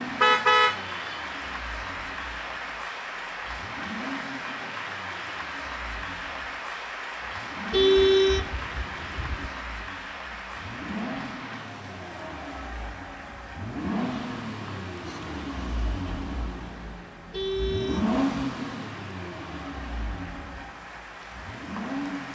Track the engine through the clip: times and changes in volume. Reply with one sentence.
The engine can be heard from 0.0 to 22.3 s, getting louder.